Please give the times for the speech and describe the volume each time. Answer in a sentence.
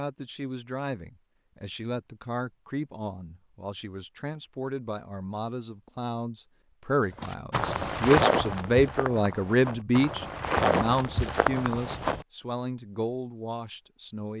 The speech can be heard from 0.0 to 14.3 s, getting louder then quieter.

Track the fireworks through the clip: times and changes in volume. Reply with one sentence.
The fireworks can't be heard in this clip.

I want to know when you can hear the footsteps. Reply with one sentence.
The footsteps can be heard from 7.2 to 12.2 s.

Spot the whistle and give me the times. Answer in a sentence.
You can't hear the whistle here.